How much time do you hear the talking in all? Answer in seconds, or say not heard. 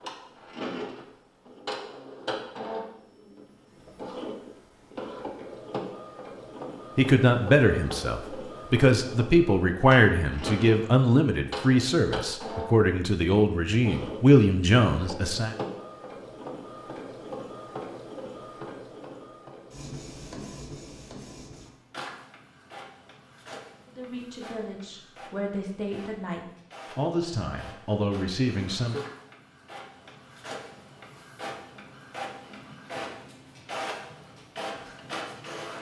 14 s.